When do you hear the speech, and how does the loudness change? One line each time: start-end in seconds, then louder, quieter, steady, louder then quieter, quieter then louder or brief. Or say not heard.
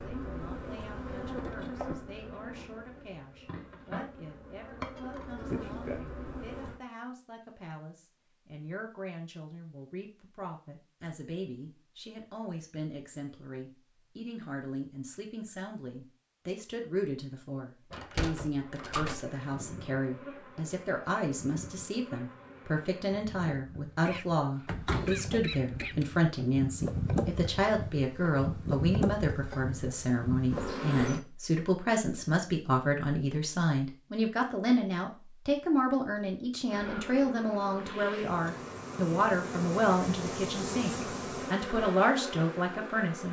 0.0-43.2 louder.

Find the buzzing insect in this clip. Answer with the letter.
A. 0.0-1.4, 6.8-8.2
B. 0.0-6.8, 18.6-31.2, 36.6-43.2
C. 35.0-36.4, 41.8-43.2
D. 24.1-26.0
B.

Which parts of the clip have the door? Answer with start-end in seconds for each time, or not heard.
17.9-19.2, 24.6-26.1.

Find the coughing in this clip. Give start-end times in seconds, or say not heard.
24.1-26.0.